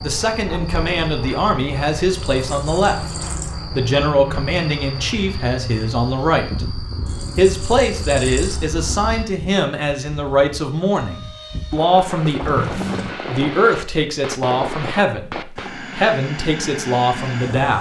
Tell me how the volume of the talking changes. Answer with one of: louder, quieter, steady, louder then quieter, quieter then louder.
steady.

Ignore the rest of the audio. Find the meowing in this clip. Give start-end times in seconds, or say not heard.
not heard.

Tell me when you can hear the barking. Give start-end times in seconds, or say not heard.
not heard.